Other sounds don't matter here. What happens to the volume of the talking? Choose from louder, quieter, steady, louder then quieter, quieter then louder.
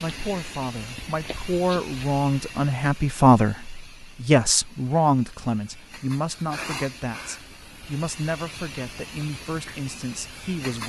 louder then quieter.